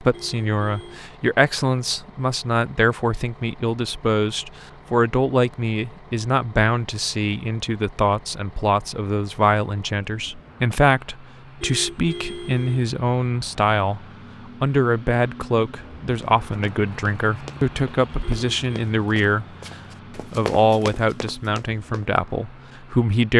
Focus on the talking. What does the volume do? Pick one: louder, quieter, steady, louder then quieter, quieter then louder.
steady.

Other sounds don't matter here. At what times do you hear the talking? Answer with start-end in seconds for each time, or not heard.
0.0-19.4, 20.1-23.3.